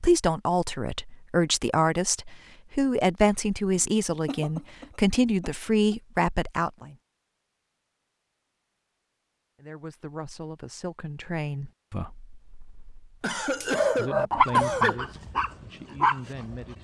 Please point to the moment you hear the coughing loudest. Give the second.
14 s.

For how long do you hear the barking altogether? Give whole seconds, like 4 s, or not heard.
3 s.